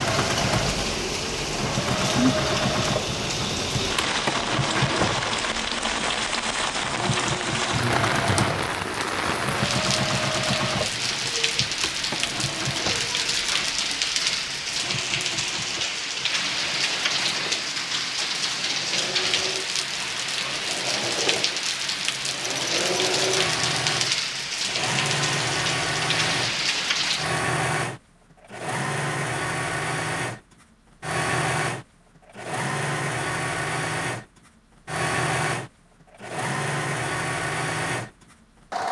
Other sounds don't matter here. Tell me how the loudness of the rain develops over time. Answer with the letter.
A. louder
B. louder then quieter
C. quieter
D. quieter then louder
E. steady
E.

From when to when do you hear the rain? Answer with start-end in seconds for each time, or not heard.
0.0-27.4.